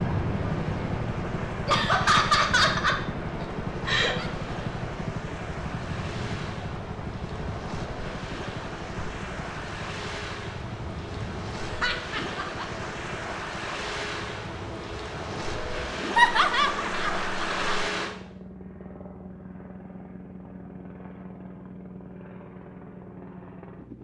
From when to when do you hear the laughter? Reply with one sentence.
You can hear the laughter from 1.6 to 4.2 s, from 11.6 to 12.8 s and from 16.1 to 17.9 s.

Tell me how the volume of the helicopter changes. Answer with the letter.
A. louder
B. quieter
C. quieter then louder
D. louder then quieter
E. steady
B.